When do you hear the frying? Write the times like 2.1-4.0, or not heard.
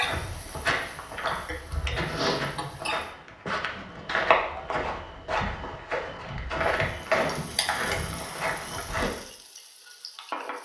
0.0-3.1, 6.8-10.6.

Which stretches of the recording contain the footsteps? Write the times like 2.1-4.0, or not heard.
0.0-9.1.